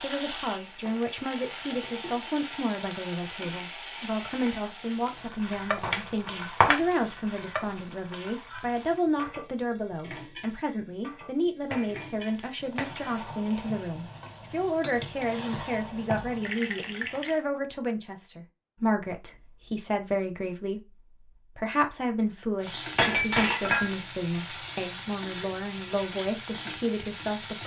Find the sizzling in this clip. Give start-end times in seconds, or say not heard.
0.0-17.4, 22.6-27.6.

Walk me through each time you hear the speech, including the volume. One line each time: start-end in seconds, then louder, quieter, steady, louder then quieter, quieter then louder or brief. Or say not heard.
0.0-27.6 steady.